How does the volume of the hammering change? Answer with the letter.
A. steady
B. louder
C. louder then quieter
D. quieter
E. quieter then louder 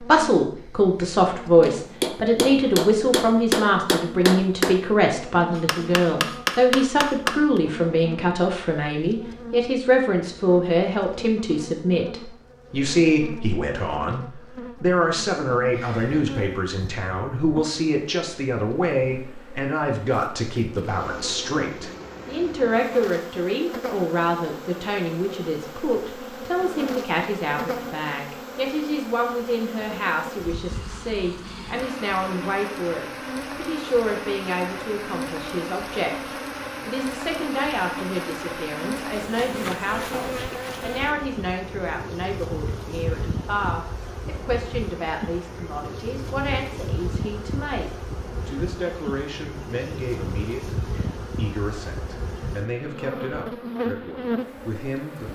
E.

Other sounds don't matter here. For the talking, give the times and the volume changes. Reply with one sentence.
The talking can be heard from 0.0 to 55.3 s, getting quieter.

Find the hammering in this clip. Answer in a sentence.
The hammering can be heard from 1.6 to 7.6 s.